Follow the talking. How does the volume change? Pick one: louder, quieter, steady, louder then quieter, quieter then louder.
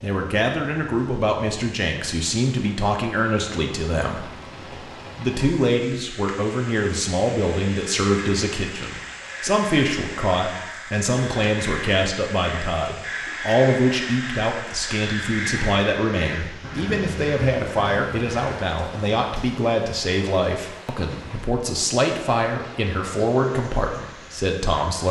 steady.